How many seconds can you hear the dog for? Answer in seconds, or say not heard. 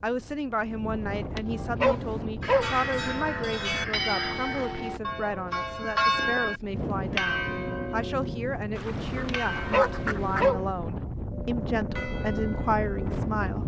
3 s.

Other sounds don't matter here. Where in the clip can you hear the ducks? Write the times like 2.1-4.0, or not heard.
2.4-4.8, 8.8-10.5.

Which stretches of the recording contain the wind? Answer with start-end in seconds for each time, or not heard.
0.0-13.6.